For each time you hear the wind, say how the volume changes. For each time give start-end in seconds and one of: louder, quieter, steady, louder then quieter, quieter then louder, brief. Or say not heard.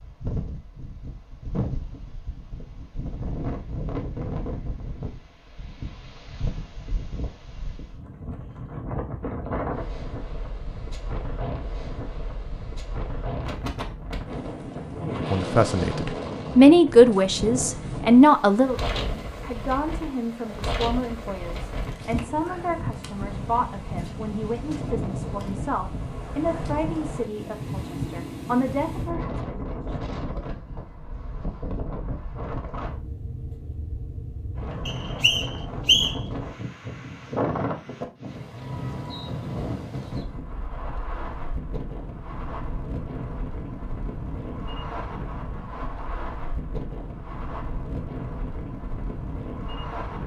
0.0-50.2 steady.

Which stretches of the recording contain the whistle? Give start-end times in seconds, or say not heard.
34.9-36.1.